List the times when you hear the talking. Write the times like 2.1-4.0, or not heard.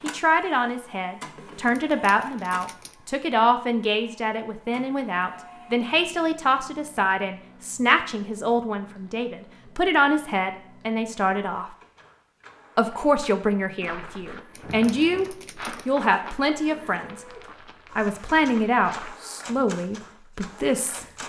0.0-11.7, 12.8-17.2, 17.9-21.1.